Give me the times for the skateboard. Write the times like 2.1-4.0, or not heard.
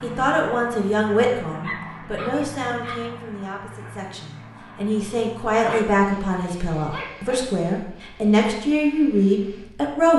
not heard.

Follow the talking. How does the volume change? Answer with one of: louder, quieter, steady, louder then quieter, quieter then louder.
quieter then louder.